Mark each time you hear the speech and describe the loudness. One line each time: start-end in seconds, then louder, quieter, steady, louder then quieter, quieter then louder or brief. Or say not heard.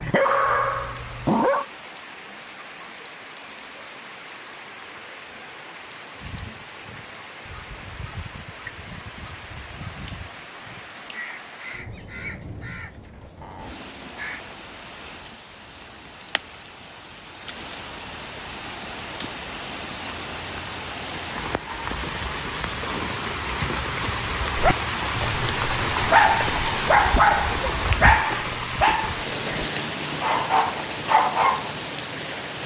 not heard.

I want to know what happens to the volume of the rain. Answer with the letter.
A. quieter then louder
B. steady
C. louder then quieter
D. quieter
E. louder
E.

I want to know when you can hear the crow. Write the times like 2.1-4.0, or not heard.
6.2-14.4.